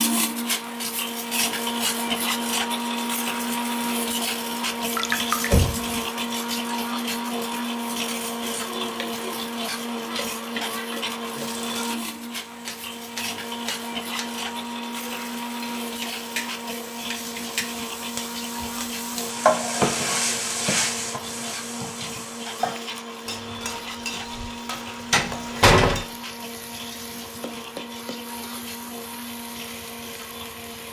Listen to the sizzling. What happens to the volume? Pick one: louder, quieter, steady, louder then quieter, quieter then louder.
louder then quieter.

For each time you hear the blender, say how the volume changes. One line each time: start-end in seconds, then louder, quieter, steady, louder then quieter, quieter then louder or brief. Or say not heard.
0.0-30.8 quieter.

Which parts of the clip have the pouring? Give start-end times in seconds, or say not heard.
4.8-5.7.